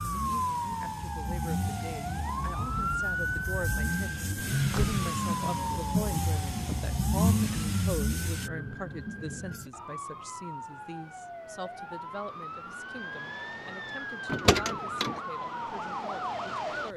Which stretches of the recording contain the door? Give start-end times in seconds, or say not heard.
4.5-5.0, 14.2-15.2.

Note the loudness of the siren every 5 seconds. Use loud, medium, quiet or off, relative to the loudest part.
loud, loud, medium, loud.